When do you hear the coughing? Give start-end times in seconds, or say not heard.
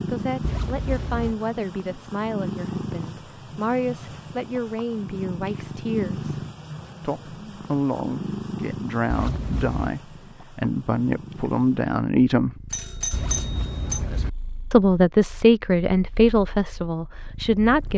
not heard.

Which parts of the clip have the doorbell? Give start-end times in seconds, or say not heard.
12.7-14.0.